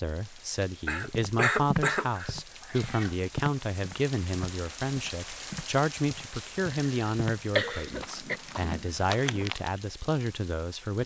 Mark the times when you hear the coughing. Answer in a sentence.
You can hear the coughing from 0.8 to 2.3 s and from 6.8 to 8.4 s.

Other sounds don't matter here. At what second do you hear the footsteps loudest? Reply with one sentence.
The loudest moment of the footsteps is at 2 seconds.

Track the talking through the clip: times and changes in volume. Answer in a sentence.
The talking can be heard from 0.0 to 11.0 s, at a steady volume.